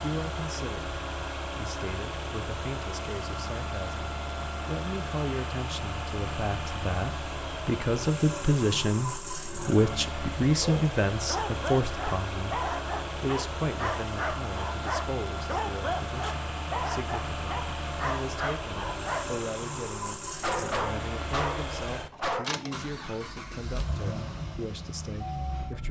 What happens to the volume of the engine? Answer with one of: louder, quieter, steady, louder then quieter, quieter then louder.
steady.